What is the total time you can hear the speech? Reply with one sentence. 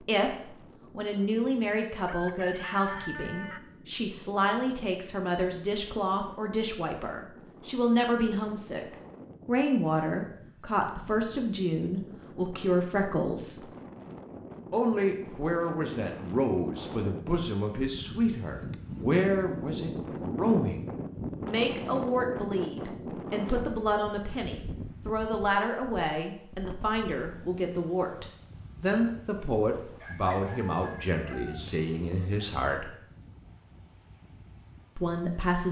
The speech can be heard for 32 seconds in total.